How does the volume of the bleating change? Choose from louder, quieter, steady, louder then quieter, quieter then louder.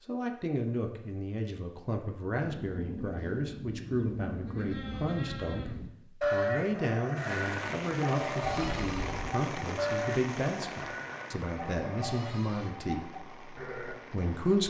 louder then quieter.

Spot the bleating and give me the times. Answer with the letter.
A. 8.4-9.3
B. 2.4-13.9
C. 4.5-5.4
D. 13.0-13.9
B.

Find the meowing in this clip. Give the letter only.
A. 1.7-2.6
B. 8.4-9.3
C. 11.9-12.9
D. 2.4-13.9
B.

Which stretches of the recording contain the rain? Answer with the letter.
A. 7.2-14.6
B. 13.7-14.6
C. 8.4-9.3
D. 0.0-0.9
A.